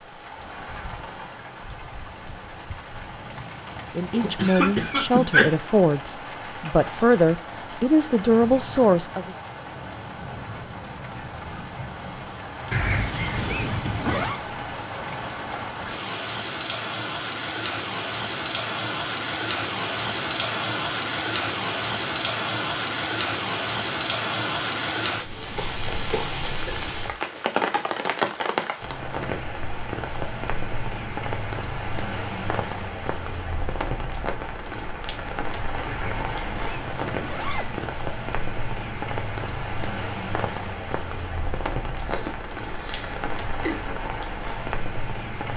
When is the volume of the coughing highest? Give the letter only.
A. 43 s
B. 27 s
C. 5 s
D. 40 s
C.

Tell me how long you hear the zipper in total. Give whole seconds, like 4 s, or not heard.
4 s.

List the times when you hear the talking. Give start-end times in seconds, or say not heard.
4.0-9.3.